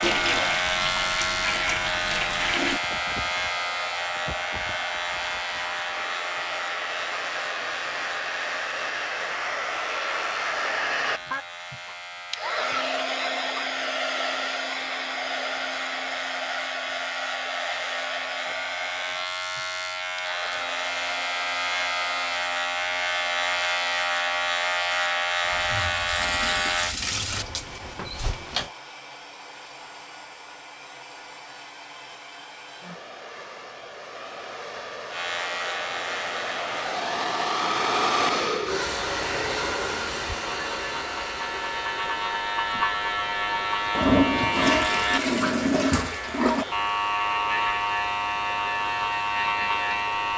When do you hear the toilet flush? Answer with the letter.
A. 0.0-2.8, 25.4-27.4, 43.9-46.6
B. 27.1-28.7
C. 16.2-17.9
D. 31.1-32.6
A.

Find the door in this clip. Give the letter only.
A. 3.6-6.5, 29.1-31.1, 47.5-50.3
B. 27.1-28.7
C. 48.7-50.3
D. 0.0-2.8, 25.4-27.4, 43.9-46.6
B.